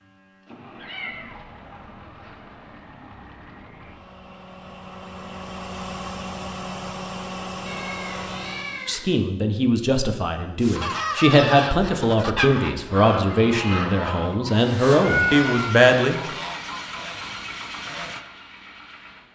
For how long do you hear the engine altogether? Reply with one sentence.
The engine can be heard for 14 seconds in total.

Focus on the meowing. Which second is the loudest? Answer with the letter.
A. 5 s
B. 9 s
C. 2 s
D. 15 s
D.